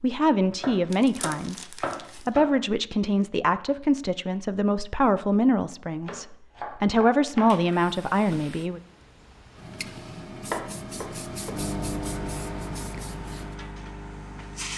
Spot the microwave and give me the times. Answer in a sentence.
You can hear the microwave from 11.5 to 14.7 s.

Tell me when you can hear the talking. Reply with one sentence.
You can hear the talking from 0.0 to 8.8 s.